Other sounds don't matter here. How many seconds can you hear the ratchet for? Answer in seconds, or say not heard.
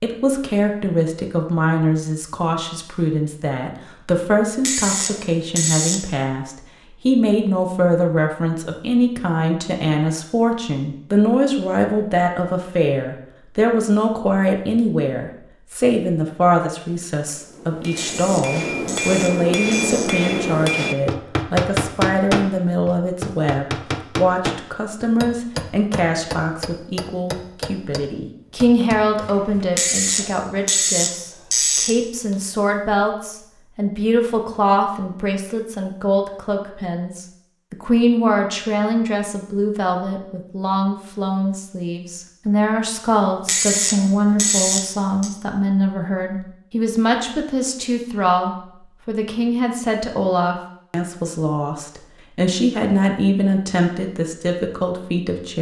8 s.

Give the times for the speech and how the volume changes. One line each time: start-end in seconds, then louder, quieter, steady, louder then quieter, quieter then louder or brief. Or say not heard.
0.0-55.5 steady.